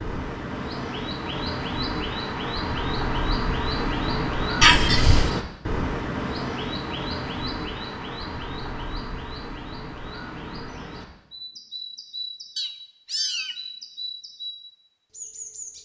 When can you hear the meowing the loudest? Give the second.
5 s.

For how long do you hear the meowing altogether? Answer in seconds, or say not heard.
2 s.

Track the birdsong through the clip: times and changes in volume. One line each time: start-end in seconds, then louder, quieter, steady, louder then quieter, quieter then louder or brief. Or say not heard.
0.0-15.8 quieter.